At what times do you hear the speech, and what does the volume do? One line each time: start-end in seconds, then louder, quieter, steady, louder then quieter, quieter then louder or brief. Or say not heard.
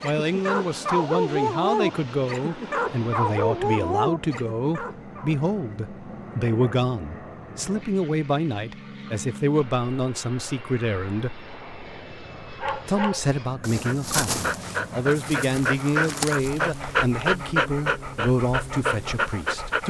0.0-11.4 steady
12.8-19.8 steady.